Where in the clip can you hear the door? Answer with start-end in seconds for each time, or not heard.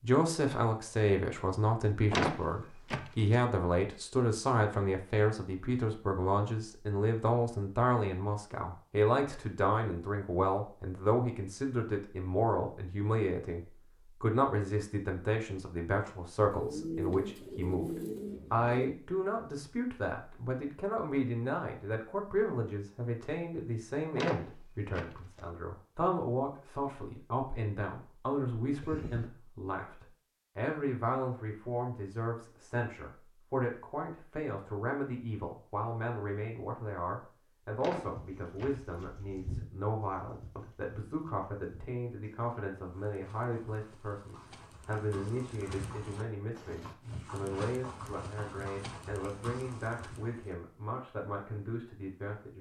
2.1-3.4, 24.1-25.4, 37.8-38.8.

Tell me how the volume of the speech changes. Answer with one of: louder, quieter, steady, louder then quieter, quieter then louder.
quieter.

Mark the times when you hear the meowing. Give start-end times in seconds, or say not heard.
not heard.